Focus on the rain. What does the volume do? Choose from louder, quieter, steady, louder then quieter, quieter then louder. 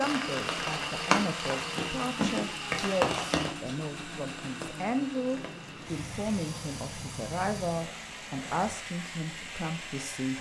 quieter.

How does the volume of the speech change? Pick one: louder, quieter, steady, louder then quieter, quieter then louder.
steady.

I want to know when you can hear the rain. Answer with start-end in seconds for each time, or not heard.
0.0-8.5.